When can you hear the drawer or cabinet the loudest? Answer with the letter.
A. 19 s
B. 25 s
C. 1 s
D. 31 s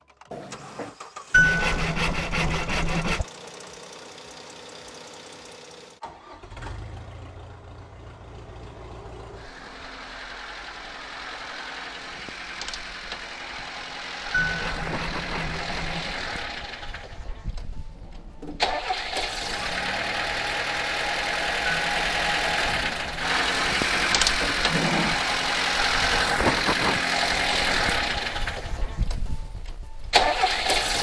B.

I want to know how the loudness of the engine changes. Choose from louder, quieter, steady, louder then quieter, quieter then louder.
louder.